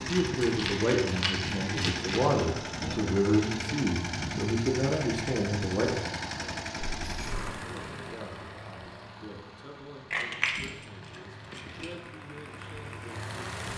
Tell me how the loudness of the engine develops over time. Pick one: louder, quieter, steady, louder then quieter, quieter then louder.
quieter.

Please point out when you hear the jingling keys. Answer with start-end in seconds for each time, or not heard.
0.1-2.5, 7.0-7.5, 10.1-11.9.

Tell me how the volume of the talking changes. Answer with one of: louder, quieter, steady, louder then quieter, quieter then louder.
quieter.